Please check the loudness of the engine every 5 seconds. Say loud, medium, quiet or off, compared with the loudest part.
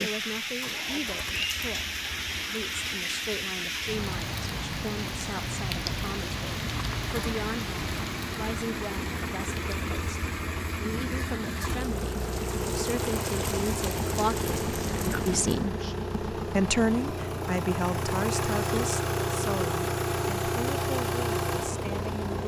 quiet, medium, loud, loud, loud.